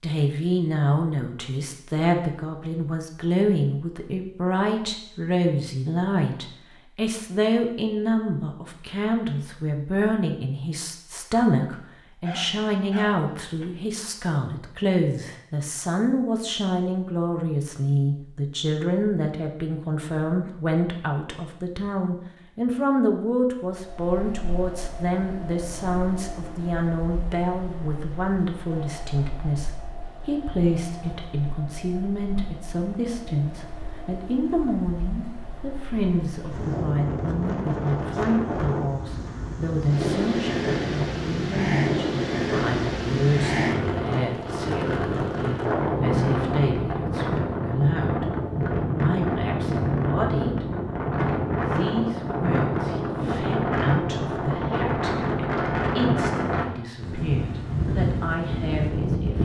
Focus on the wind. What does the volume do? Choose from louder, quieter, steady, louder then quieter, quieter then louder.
louder.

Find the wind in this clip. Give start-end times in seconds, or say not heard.
23.6-59.3.